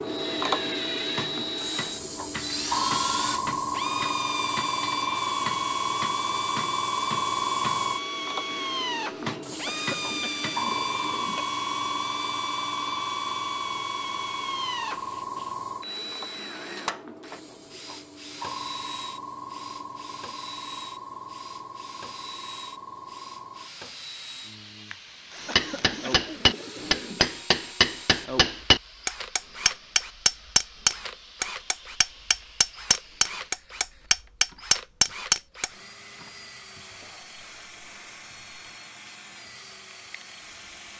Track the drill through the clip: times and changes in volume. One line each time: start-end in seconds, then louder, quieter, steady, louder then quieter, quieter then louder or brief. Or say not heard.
0.0-40.9 quieter.